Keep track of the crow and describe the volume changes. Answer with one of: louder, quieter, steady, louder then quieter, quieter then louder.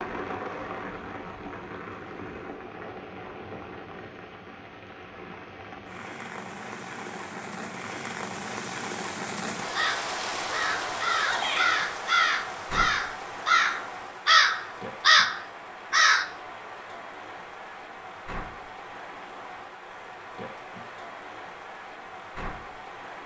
louder.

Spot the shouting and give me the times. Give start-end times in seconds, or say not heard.
11.1-11.7.